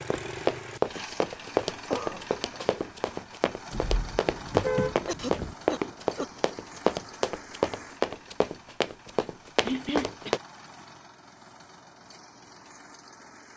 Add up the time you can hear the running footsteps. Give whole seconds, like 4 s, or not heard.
10 s.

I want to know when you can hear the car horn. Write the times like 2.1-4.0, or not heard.
3.7-5.5.